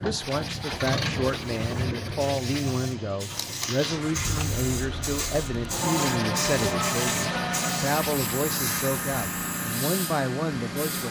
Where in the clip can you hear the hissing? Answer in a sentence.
You can hear the hissing from 0.0 to 11.0 s.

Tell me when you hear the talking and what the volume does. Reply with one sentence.
You can hear the talking from 0.0 to 11.0 s, at a steady volume.